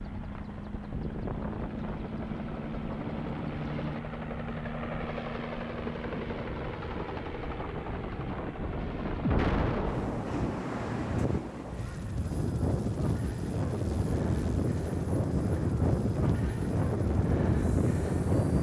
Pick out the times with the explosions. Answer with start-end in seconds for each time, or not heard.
9.2-10.5.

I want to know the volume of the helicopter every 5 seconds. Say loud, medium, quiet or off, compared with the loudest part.
loud, loud, medium, quiet.